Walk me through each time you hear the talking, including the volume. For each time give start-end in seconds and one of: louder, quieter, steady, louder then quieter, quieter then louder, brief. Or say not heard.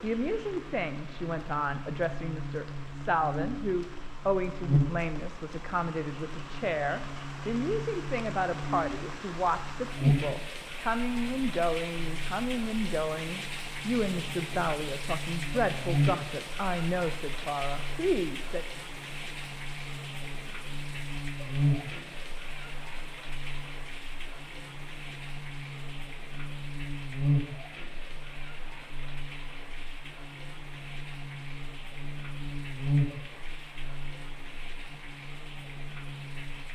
0.0-18.6 steady.